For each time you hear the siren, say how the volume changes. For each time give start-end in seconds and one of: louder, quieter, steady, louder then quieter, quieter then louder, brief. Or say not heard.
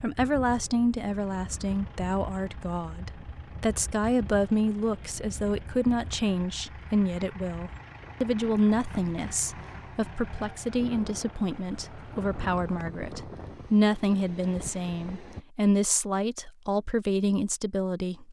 not heard.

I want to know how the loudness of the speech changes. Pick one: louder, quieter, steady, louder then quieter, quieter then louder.
steady.